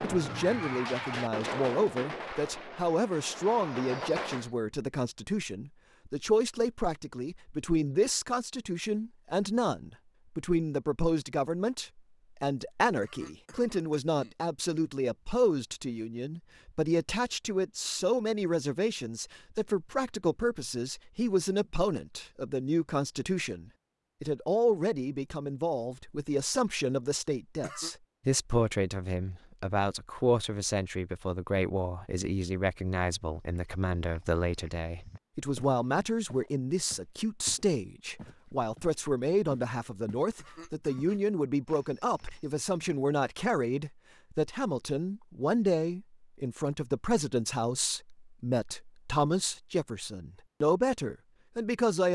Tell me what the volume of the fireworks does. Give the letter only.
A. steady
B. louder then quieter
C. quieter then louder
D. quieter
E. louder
C.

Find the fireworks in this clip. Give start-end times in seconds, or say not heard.
0.0-4.5.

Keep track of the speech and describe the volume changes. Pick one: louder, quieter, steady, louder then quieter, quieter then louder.
steady.